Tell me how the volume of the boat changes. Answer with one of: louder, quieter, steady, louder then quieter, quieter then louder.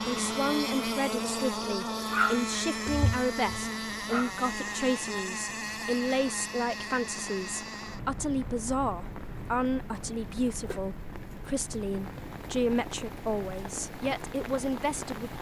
quieter.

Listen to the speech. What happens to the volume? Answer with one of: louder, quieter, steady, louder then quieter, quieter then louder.
steady.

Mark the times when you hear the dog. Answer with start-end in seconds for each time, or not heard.
2.1-4.3.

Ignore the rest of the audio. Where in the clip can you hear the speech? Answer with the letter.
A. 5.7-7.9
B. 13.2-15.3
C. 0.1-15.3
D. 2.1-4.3
C.